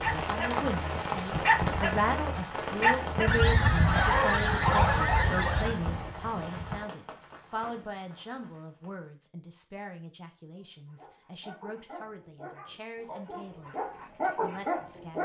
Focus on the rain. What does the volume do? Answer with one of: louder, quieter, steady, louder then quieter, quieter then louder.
quieter.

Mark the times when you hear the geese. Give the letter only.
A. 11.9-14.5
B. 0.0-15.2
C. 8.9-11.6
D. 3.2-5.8
D.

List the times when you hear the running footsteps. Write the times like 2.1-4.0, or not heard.
not heard.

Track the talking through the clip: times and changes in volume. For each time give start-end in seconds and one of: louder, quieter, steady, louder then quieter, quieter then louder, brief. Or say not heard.
0.0-15.2 quieter.